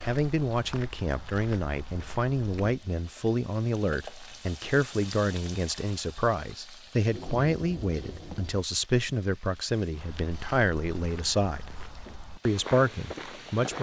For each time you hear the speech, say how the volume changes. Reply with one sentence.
You can hear the speech from 0.0 to 11.8 s, at a steady volume; and briefly from 12.4 to 13.7 s.